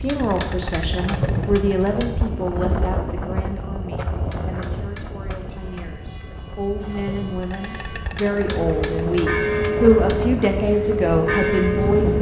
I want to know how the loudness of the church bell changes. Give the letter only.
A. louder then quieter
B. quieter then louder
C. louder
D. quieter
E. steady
C.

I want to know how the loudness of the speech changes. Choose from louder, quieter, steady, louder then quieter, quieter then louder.
quieter then louder.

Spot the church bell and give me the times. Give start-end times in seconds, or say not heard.
5.5-12.1.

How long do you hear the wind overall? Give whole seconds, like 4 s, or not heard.
12 s.